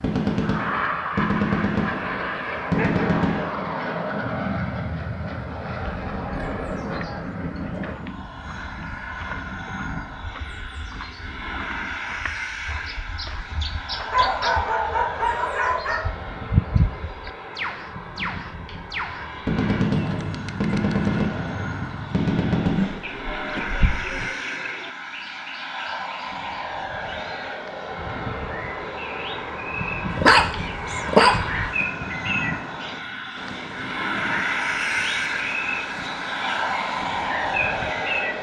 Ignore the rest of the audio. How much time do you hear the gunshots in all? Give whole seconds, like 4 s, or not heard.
7 s.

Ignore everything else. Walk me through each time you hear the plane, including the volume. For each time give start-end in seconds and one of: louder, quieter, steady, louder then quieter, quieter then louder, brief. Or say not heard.
0.0-38.3 quieter then louder.